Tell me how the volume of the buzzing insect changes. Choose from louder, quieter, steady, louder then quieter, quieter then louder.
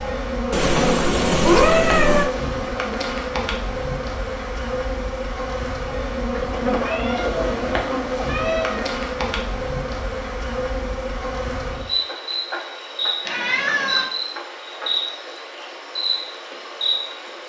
steady.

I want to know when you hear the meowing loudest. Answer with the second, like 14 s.
2 s.